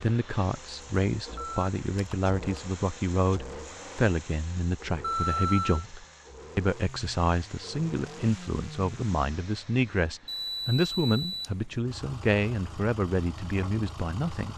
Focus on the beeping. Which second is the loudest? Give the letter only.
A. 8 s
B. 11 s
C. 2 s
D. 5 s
D.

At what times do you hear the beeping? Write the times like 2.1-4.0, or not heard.
1.4-2.6, 5.0-5.8, 10.2-11.5.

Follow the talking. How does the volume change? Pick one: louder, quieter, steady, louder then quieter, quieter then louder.
steady.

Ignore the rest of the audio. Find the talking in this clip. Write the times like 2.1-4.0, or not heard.
0.0-14.5.